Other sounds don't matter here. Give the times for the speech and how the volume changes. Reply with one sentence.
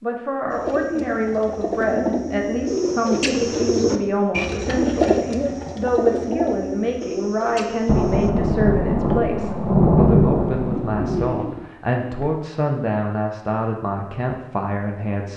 You can hear the speech from 0.0 to 15.3 s, at a steady volume.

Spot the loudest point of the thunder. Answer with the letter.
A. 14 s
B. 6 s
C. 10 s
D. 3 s
C.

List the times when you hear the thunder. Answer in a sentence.
The thunder can be heard from 7.8 to 11.4 s.